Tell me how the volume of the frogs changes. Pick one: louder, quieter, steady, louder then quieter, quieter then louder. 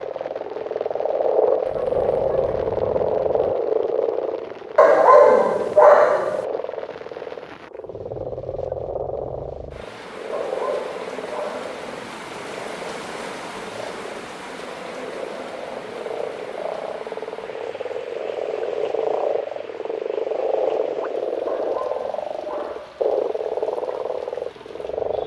quieter then louder.